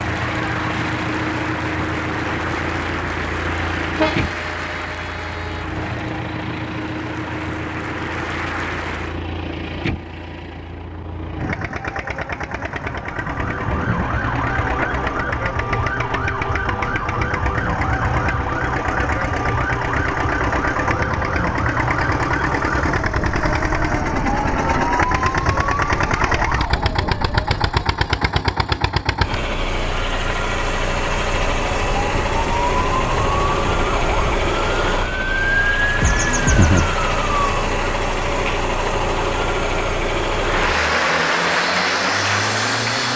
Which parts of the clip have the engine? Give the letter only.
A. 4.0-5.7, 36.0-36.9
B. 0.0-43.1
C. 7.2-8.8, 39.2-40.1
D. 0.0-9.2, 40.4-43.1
B.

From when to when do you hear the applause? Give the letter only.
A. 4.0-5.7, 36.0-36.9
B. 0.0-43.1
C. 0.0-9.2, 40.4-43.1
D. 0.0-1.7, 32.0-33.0
C.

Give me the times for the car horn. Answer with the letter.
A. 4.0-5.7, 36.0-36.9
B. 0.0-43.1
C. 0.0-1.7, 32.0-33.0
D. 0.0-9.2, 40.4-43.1
A.